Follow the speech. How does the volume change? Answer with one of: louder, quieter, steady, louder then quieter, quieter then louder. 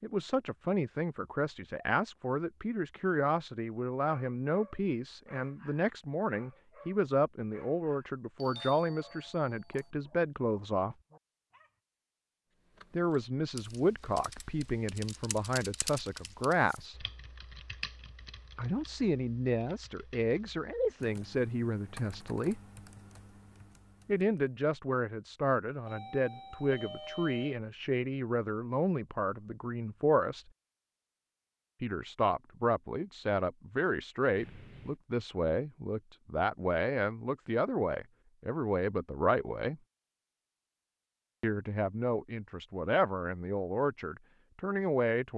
steady.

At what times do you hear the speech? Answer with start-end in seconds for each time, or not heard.
0.0-10.9, 12.9-17.1, 18.6-22.6, 24.1-30.4, 31.8-39.8, 41.4-45.3.